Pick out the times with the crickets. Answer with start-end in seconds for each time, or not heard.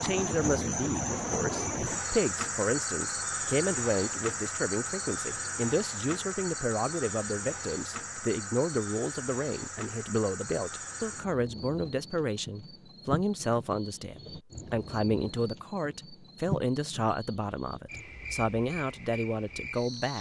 0.0-20.1.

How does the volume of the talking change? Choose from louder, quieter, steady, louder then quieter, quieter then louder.
steady.